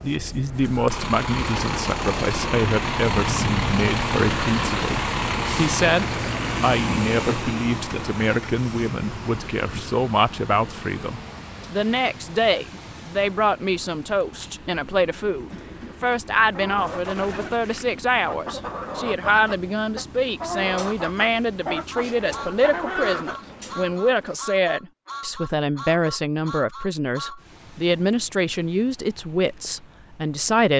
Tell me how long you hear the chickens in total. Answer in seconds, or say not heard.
10 s.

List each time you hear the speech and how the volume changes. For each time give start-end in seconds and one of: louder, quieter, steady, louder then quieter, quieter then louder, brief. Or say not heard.
0.0-30.7 steady.